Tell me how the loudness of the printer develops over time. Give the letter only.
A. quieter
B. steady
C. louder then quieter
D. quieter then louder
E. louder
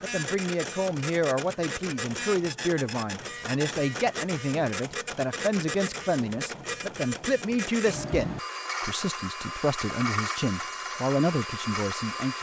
B.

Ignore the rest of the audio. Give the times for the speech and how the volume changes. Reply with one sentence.
You can hear the speech from 0.0 to 12.3 s, at a steady volume.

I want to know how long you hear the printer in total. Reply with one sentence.
The printer can be heard for 12 seconds in total.